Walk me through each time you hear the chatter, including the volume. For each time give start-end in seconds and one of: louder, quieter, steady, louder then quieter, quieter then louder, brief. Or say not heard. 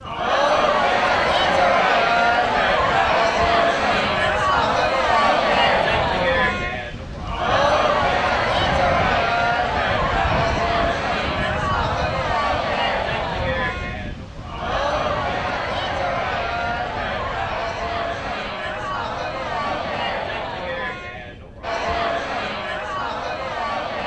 0.0-24.0 quieter.